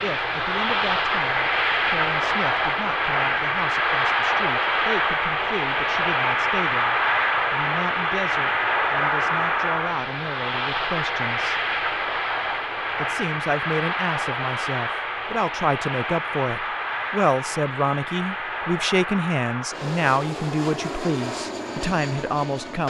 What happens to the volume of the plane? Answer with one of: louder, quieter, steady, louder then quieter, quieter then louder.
quieter.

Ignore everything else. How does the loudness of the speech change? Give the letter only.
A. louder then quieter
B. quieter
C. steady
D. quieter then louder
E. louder
E.